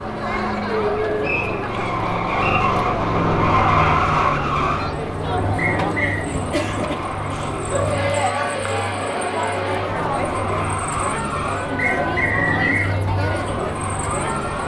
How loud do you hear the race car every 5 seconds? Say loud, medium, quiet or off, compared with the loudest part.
loud, medium, medium.